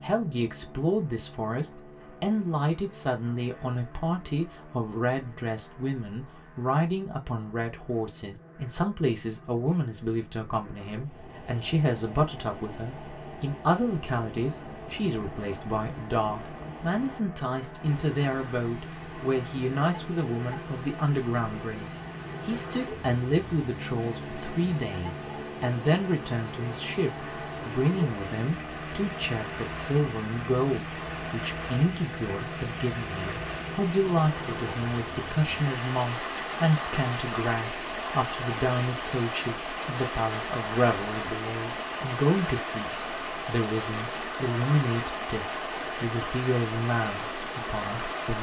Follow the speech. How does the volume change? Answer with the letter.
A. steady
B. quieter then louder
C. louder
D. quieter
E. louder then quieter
A.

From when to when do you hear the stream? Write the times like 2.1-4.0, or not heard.
10.9-48.3.